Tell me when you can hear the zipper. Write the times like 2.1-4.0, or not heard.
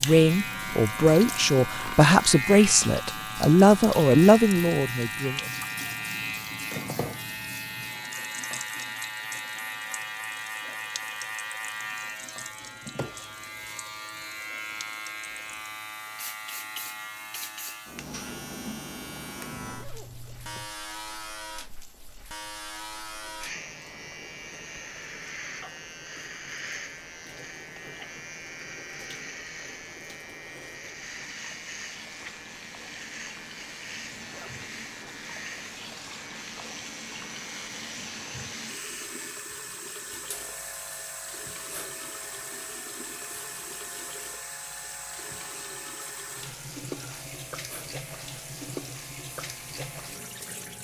19.5-20.8, 34.0-34.9.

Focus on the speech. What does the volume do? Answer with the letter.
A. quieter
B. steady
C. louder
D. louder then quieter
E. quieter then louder
B.